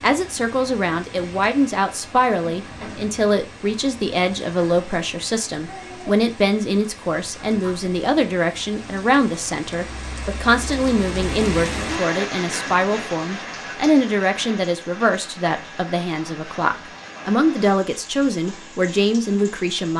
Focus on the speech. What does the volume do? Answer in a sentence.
The volume of the speech stays about the same.